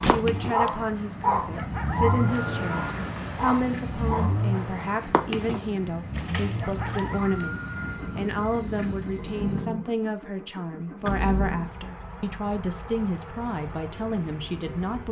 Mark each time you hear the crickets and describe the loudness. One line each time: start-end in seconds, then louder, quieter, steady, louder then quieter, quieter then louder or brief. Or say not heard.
0.0-9.7 steady.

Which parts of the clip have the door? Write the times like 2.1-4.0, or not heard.
0.0-0.7, 6.2-7.0, 11.1-11.5.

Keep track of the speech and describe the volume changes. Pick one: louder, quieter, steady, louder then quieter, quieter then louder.
steady.